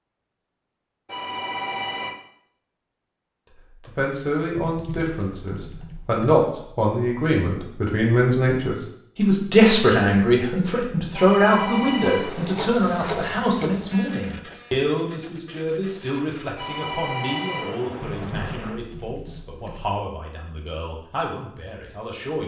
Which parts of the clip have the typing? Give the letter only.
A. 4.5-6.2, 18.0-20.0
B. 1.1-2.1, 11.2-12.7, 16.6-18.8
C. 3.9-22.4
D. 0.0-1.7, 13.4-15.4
A.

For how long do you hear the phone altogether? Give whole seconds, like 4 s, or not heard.
5 s.